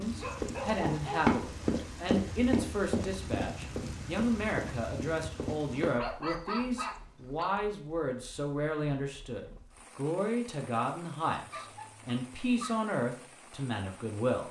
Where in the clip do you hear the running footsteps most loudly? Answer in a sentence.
The volume of the running footsteps peaks at 1 second.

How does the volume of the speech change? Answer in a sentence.
The loudness of the speech stays about the same.